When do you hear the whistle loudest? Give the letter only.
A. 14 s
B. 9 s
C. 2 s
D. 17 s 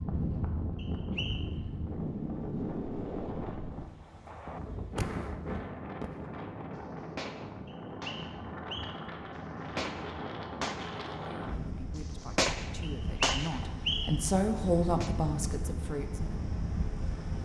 A.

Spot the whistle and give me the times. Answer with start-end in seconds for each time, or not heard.
0.8-1.4, 7.7-9.1, 12.8-14.2.